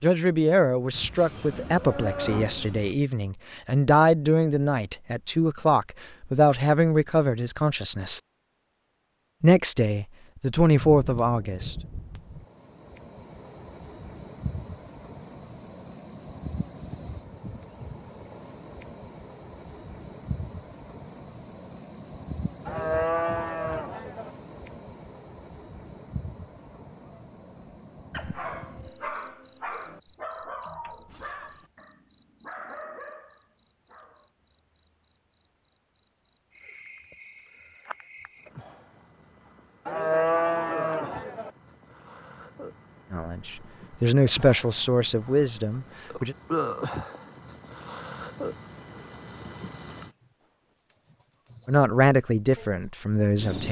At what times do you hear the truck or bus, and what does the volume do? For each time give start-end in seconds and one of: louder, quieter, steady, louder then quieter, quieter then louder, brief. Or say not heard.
not heard.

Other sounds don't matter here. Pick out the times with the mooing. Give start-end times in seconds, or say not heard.
0.9-3.0, 22.6-24.3, 39.9-41.5.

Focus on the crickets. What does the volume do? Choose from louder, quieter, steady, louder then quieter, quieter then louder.
quieter then louder.